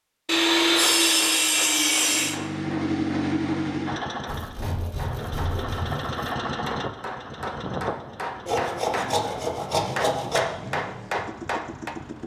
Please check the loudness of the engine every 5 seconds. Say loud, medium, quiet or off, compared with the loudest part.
loud, medium, medium.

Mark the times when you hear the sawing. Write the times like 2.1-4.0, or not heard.
0.2-2.4, 4.2-6.2, 8.4-10.4.